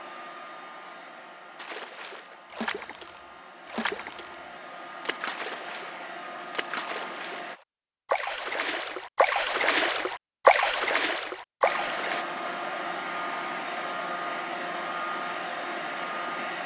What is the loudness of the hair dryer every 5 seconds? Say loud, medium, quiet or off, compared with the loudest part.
quiet, medium, loud, loud.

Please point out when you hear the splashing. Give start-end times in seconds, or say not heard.
1.6-4.4, 5.0-12.2.